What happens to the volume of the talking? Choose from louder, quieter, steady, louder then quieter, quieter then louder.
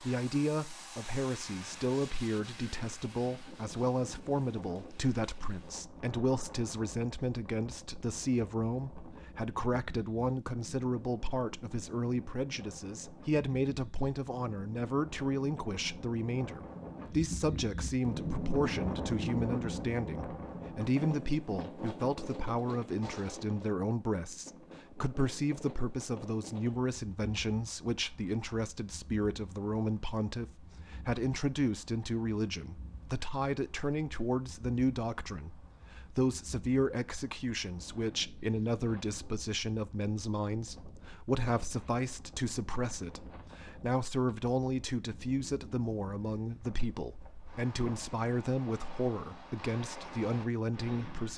steady.